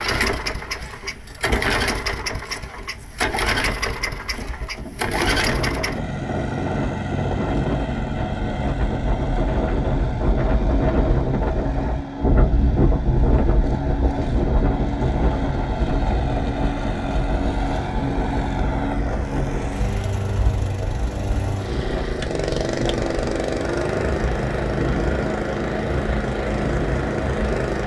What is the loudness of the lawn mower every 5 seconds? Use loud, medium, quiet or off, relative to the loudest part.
loud, loud, medium, loud, loud, loud.